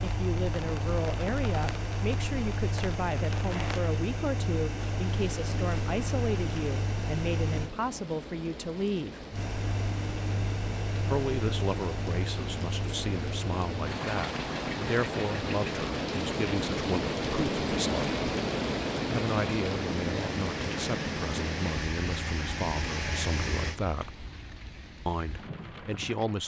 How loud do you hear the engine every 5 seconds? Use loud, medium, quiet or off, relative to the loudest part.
loud, loud, loud, loud, loud, off.